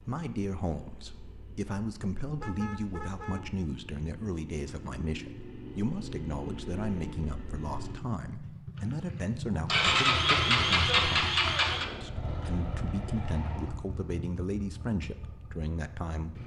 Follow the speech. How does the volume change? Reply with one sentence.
The volume of the speech stays about the same.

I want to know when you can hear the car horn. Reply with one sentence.
You can hear the car horn from 2.4 to 3.4 s.